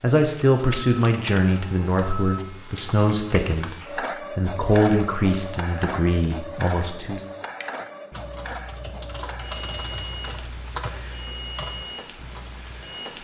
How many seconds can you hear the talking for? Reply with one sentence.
The talking can be heard for 7 seconds in total.